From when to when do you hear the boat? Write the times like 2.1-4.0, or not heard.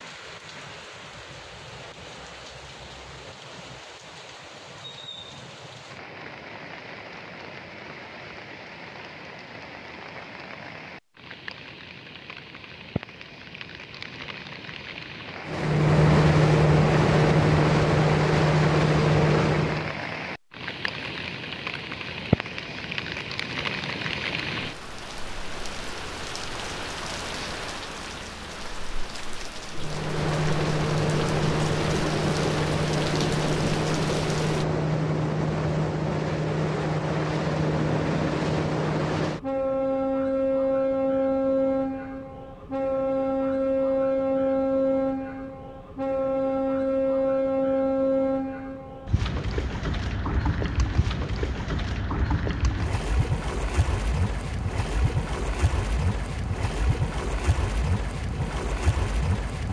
15.4-20.0, 29.7-59.6.